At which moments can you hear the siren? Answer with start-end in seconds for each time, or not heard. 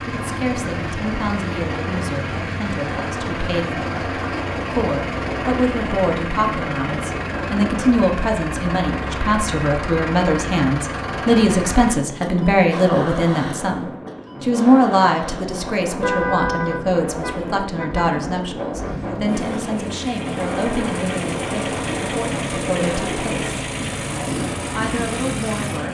not heard.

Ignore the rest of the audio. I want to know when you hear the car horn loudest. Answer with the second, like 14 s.
16 s.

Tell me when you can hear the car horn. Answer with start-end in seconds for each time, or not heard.
15.8-18.2.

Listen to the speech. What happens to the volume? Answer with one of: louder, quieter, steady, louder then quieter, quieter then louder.
louder then quieter.